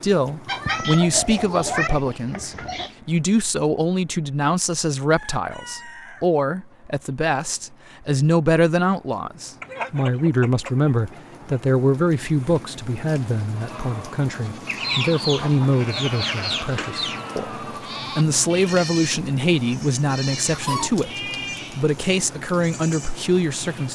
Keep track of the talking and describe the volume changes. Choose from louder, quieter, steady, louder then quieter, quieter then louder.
steady.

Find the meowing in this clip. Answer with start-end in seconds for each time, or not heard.
0.5-1.9.